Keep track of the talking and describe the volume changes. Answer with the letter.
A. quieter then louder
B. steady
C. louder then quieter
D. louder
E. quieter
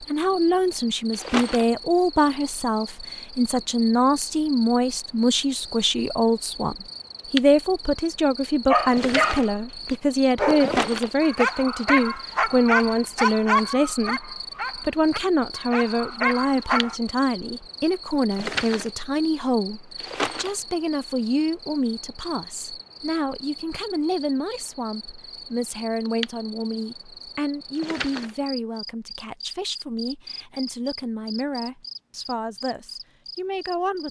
E.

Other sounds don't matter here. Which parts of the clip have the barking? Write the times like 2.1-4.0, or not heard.
8.7-16.9.